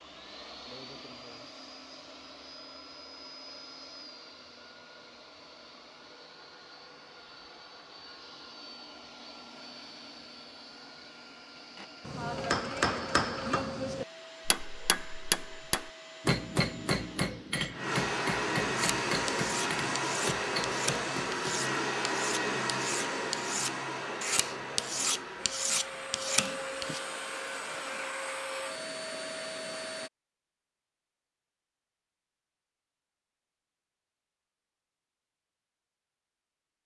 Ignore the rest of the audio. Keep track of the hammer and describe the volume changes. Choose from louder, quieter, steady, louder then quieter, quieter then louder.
quieter.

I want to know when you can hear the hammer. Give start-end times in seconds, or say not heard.
11.8-21.6.